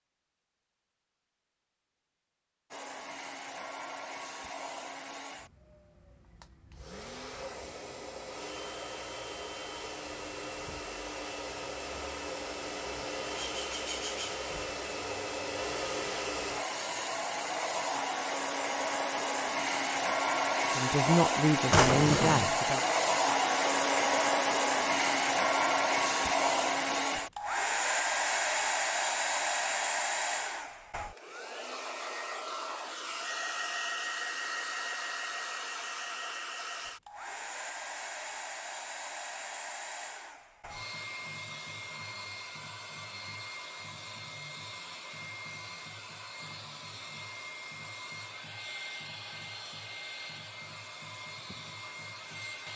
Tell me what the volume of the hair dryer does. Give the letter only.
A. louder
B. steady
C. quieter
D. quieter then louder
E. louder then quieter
E.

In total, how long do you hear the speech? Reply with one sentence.
You can hear the speech for 2 seconds altogether.